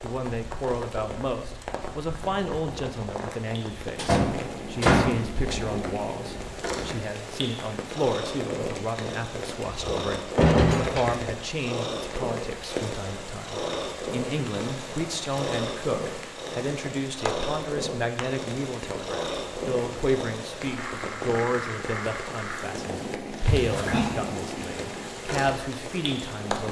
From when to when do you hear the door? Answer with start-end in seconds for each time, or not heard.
4.0-5.2, 9.6-11.2, 23.4-24.1.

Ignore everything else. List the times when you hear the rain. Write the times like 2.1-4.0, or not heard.
0.0-26.6.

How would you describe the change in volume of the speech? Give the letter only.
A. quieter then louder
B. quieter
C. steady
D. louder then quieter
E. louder
C.